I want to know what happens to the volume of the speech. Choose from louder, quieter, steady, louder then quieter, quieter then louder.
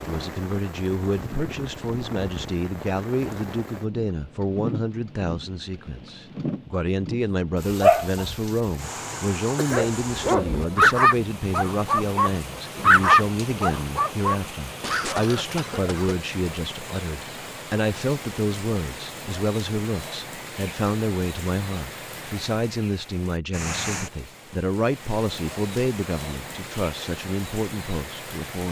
steady.